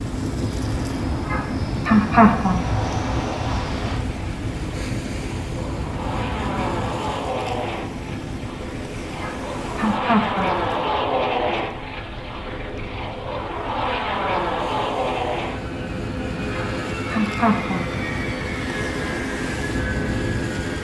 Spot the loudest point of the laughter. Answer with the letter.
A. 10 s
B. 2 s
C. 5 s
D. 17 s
B.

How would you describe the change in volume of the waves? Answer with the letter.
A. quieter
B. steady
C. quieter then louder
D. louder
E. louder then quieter
C.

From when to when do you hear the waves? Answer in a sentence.
The waves can be heard from 0.0 to 20.8 s.